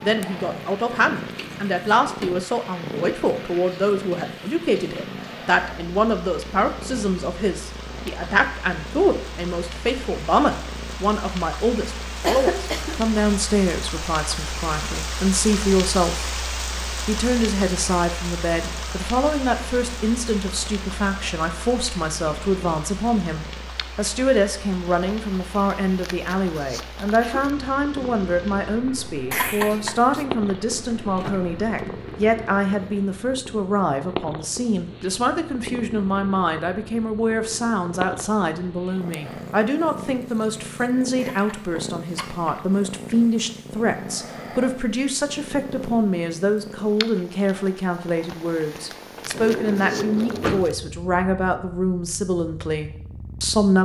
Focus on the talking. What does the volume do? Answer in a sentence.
The loudness of the talking stays about the same.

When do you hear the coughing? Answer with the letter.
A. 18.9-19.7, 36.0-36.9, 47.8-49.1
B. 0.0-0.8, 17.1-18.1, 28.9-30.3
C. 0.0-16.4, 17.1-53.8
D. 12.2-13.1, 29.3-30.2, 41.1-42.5
D.